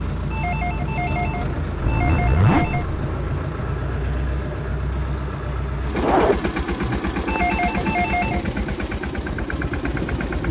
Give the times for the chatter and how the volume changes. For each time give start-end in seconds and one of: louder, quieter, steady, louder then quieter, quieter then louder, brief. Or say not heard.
not heard.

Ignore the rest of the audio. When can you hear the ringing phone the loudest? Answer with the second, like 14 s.
8 s.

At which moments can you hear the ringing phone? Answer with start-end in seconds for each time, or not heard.
0.3-2.9, 7.2-8.4.